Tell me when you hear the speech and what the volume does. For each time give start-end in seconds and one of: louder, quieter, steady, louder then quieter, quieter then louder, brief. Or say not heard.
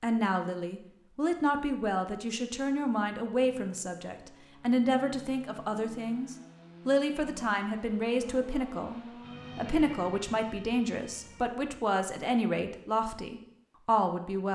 0.0-14.4 steady.